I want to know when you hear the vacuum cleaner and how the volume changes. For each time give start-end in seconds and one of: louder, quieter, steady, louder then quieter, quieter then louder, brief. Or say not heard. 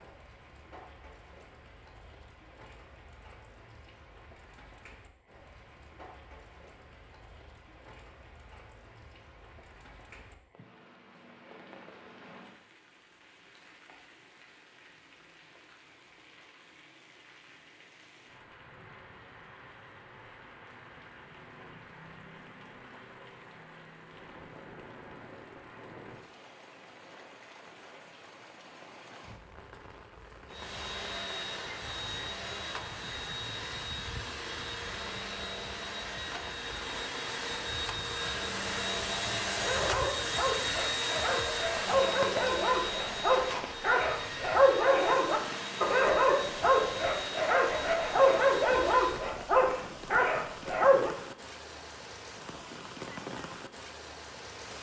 30.4-49.3 louder then quieter.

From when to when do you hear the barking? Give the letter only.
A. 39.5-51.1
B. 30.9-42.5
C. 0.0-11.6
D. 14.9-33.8
A.